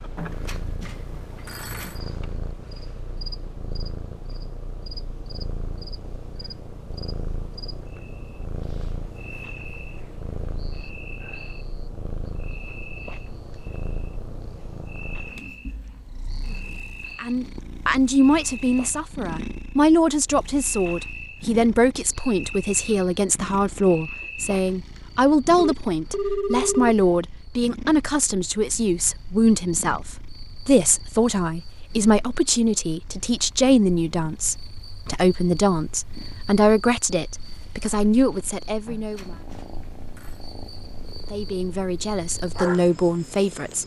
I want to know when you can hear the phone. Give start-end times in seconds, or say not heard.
0.1-2.0, 25.6-26.9, 38.9-40.4.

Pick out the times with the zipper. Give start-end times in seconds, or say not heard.
not heard.